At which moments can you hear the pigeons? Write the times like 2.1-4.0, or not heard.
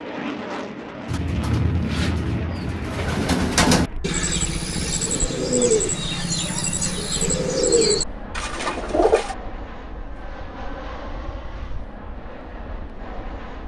1.1-9.3.